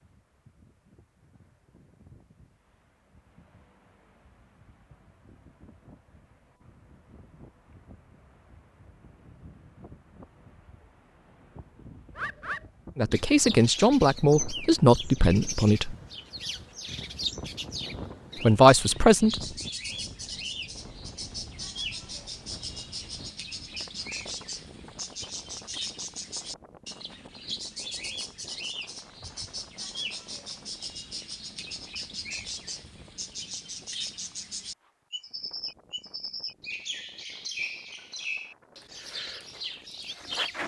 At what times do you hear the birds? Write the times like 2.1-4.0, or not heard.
12.2-40.6.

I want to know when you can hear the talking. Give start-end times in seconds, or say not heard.
12.9-15.9, 18.4-19.4.